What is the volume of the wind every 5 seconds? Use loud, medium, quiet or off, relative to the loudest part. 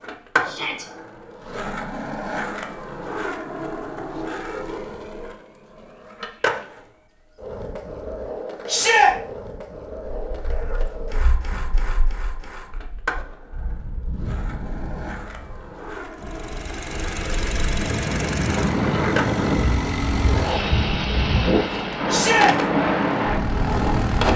off, off, quiet, loud, loud.